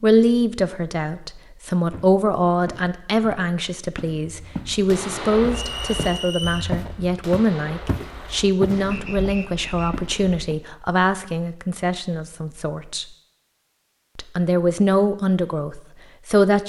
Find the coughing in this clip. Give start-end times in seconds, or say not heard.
not heard.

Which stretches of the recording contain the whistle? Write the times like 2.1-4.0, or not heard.
5.5-6.7, 8.9-9.9.